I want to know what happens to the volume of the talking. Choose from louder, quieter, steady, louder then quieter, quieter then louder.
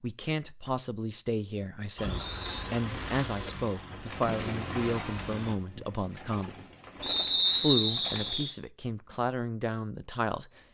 steady.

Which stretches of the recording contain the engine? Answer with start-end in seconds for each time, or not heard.
1.9-5.5.